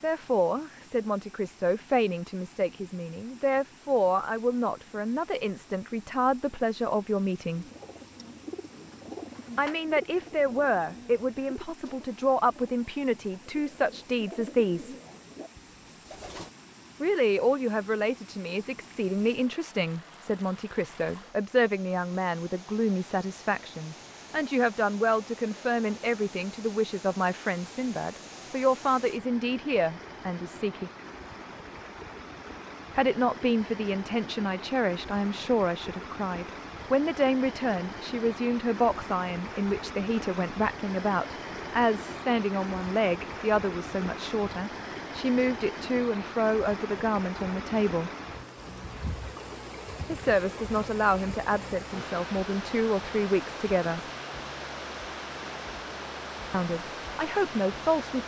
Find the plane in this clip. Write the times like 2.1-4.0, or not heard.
not heard.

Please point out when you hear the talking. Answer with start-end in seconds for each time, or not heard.
0.0-7.7, 9.6-14.9, 17.0-30.9, 33.0-48.1, 50.0-54.0, 56.5-58.2.